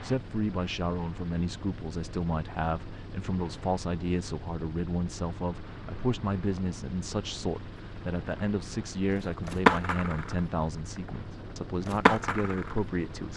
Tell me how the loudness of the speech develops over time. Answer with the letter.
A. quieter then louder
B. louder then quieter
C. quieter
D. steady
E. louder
D.